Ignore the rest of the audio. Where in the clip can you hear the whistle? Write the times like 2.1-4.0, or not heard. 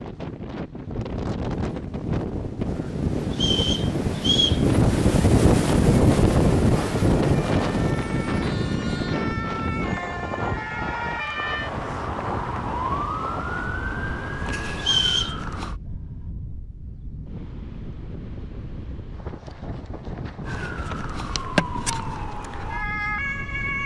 3.3-4.6, 14.8-15.3.